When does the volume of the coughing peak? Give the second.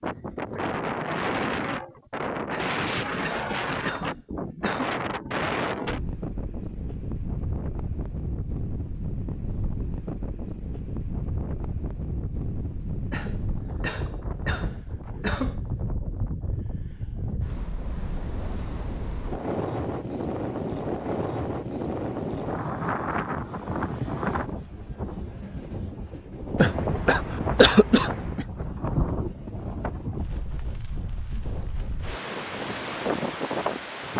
28 s.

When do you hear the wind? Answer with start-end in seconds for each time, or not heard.
0.0-34.1.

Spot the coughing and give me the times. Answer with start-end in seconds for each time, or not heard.
2.5-5.0, 13.1-15.6, 26.6-28.4.